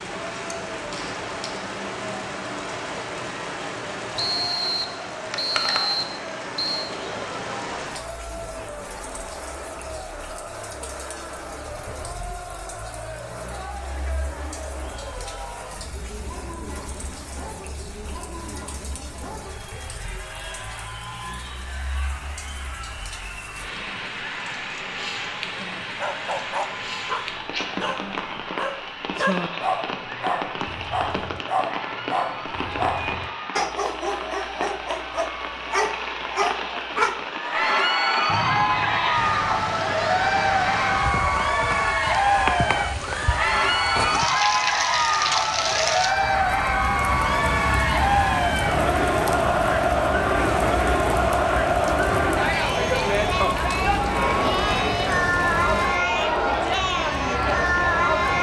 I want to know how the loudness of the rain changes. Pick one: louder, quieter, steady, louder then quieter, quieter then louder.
quieter then louder.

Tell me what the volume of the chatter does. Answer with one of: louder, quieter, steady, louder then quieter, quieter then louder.
louder.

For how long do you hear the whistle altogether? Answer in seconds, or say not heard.
4 s.